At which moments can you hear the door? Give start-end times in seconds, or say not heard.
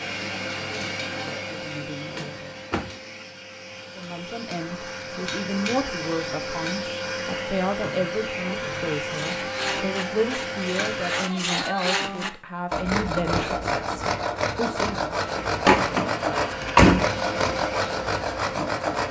2.0-3.0, 15.7-17.1.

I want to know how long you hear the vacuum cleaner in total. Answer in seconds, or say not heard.
15 s.